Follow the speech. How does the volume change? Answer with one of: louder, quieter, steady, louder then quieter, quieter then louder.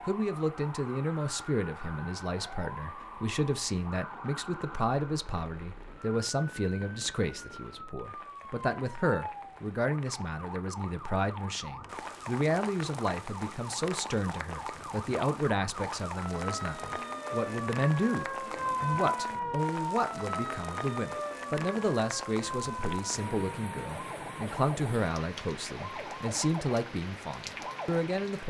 steady.